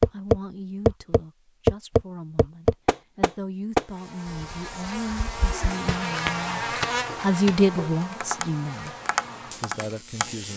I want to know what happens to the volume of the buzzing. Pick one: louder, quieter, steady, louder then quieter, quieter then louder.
louder then quieter.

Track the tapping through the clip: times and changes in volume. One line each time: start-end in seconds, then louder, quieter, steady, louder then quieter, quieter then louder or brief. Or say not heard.
0.0-10.3 quieter then louder.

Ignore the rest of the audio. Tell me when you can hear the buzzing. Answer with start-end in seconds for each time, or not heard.
3.9-10.5.